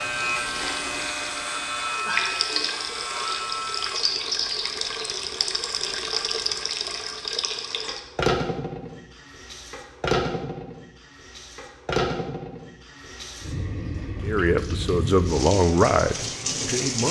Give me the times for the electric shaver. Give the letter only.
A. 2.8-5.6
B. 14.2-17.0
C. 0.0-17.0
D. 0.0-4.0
D.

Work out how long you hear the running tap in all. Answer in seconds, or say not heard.
17 s.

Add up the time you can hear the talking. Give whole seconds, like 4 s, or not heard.
3 s.